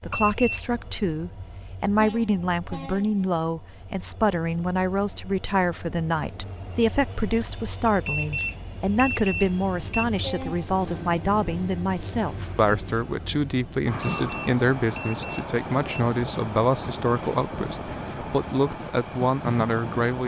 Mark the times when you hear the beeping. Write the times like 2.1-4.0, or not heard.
0.1-0.7, 8.1-10.1, 14.0-16.0.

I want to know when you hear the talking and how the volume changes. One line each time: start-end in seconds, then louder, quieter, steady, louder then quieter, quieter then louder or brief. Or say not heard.
0.0-20.2 steady.